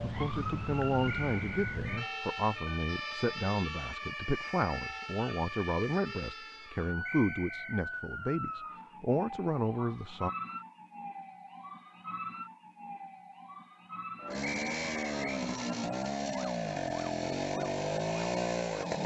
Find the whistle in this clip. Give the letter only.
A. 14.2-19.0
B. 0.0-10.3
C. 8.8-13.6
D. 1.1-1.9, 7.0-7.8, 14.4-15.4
D.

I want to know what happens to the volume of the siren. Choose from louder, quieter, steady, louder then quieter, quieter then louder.
quieter.